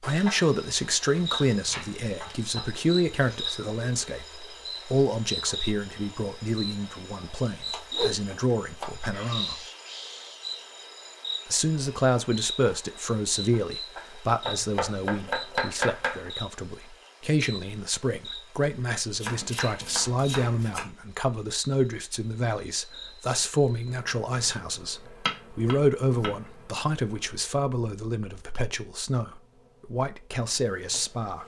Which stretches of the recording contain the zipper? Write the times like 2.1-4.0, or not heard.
not heard.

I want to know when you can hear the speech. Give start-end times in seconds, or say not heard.
0.0-9.6, 11.4-31.4.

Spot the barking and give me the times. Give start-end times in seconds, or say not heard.
not heard.